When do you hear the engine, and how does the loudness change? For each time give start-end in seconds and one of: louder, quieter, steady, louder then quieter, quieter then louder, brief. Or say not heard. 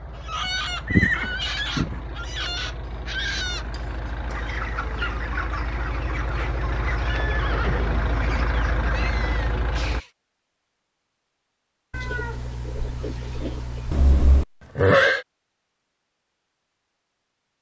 0.0-10.0 louder.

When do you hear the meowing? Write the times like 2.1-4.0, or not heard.
2.9-4.2, 8.9-10.1, 11.9-13.9.